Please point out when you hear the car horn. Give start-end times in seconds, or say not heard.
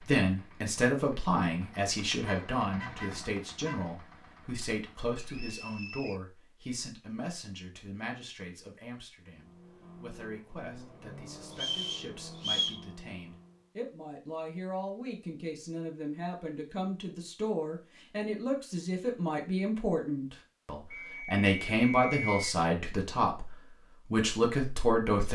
2.2-4.0.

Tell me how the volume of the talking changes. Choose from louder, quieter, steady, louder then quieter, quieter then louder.
quieter then louder.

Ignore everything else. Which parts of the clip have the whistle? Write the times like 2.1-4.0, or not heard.
5.2-6.2, 11.6-12.8, 20.9-22.5.